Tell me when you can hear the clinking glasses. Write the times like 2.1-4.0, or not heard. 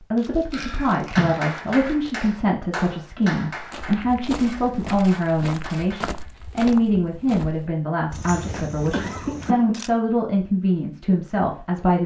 not heard.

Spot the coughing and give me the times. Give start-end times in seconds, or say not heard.
0.5-1.5, 8.4-9.8.